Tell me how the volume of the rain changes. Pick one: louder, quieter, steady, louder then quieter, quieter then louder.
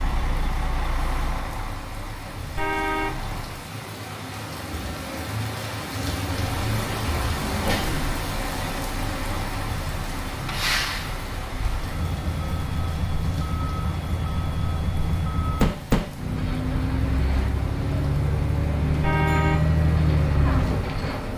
louder then quieter.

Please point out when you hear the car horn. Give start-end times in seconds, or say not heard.
2.5-3.2, 19.0-19.7.